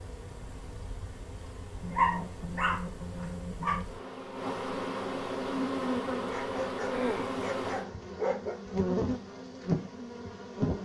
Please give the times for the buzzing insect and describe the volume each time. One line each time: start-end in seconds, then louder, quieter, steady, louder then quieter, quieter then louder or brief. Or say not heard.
0.0-10.8 louder.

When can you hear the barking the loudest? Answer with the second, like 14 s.
2 s.